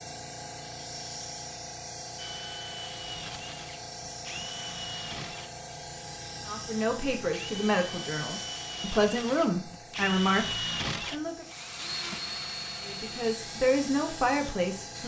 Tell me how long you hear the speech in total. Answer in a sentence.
You can hear the speech for 7 seconds altogether.